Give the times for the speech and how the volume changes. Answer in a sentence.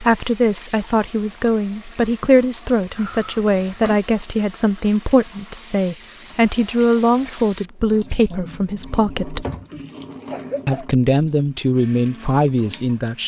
You can hear the speech from 0.0 to 9.4 s, at a steady volume; and briefly from 10.7 to 13.2 s.